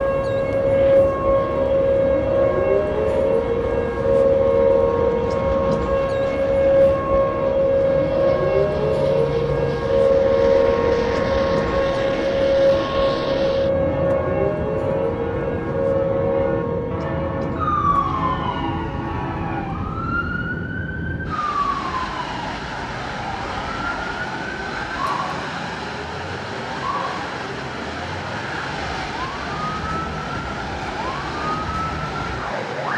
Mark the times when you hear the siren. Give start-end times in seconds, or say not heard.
0.0-32.9.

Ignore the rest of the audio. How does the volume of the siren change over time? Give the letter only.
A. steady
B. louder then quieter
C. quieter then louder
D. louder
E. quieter
E.